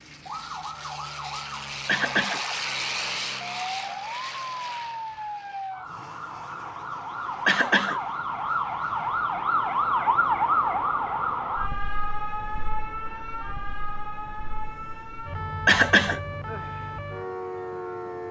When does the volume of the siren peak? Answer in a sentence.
The volume of the siren peaks at 10 seconds.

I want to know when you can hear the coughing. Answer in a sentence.
The coughing can be heard from 1.9 to 2.4 s, from 7.5 to 8.0 s and from 15.7 to 16.2 s.